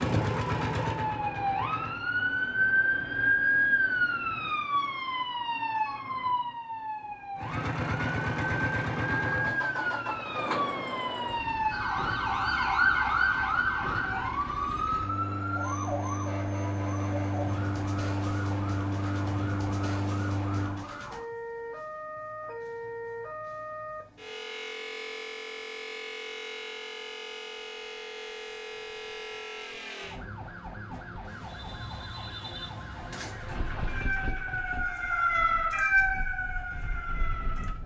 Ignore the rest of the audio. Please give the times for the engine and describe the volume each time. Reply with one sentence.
You can hear the engine briefly from 0.0 to 2.0 s; from 7.3 to 20.9 s, getting quieter then louder; and from 33.4 to 37.8 s, getting quieter then louder.